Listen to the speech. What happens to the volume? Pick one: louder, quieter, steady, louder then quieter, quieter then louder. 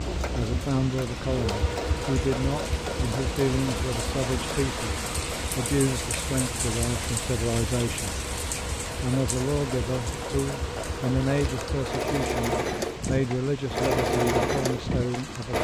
steady.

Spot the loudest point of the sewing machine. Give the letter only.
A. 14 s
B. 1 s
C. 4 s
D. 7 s
A.